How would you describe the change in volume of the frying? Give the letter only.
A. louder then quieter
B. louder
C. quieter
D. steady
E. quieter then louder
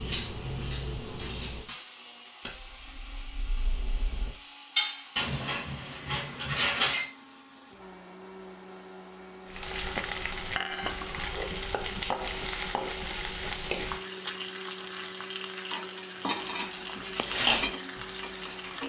D.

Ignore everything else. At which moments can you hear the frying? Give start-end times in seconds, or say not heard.
9.4-18.8.